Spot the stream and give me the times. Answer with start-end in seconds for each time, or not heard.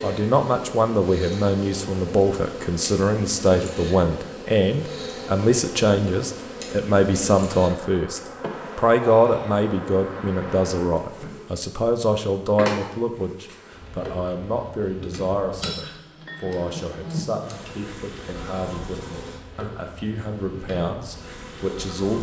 not heard.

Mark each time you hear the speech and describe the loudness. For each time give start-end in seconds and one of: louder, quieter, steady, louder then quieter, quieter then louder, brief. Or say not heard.
0.0-22.1 quieter.